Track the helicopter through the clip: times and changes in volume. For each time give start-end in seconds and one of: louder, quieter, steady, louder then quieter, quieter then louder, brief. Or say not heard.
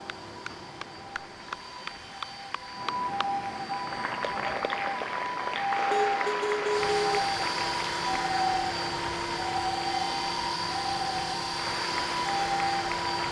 0.0-13.2 louder.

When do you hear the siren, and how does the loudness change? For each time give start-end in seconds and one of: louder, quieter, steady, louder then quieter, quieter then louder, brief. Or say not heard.
0.0-13.2 louder.